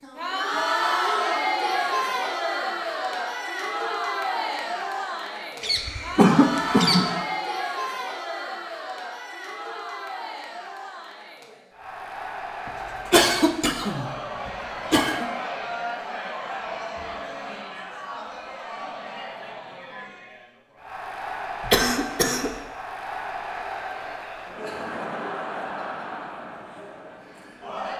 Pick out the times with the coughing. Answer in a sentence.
The coughing can be heard from 5.6 to 7.0 s, from 12.7 to 15.3 s and from 21.6 to 22.6 s.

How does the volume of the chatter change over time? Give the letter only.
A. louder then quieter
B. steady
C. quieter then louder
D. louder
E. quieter
E.